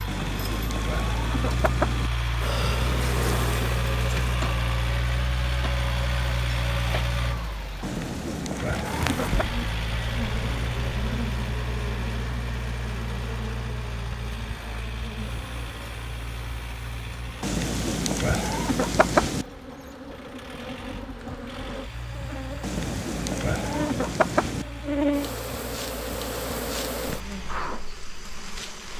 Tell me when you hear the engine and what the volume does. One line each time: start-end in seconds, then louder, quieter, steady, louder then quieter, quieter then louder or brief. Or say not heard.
0.0-28.9 quieter.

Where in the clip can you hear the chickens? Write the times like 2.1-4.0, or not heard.
0.1-2.1, 7.8-9.5, 17.4-19.4, 22.6-24.6.